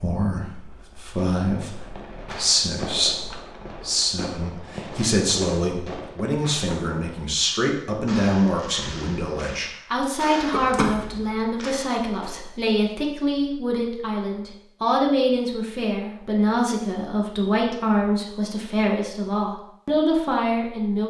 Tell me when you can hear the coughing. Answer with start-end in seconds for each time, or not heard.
10.5-11.2.